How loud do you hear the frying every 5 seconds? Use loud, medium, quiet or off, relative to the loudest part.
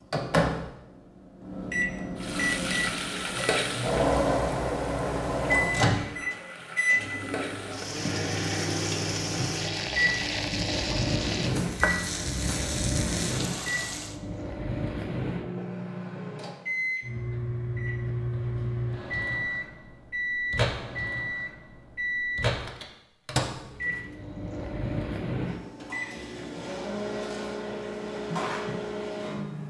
loud, loud, loud, off, off, off.